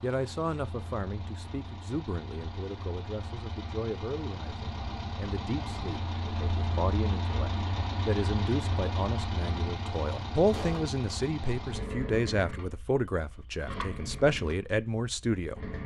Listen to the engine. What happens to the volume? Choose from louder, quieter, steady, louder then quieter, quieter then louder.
louder then quieter.